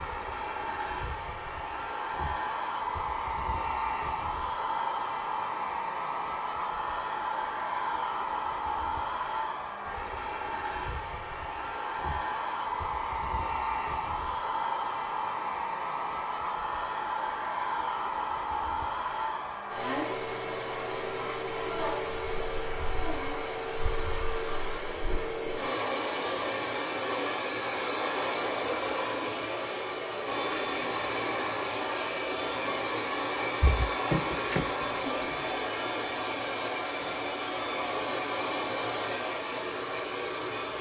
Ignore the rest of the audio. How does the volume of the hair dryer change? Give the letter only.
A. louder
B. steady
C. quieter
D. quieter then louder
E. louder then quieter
B.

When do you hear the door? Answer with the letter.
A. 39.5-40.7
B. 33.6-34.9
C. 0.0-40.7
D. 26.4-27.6
B.